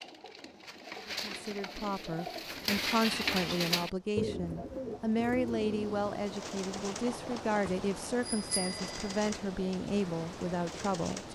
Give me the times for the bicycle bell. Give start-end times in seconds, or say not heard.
6.7-9.1.